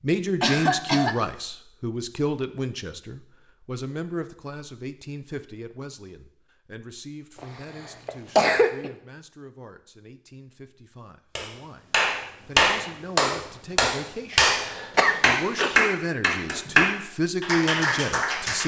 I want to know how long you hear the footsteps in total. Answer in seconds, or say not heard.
not heard.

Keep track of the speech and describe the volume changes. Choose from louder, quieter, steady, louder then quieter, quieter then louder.
quieter then louder.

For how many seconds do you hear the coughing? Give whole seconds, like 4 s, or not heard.
3 s.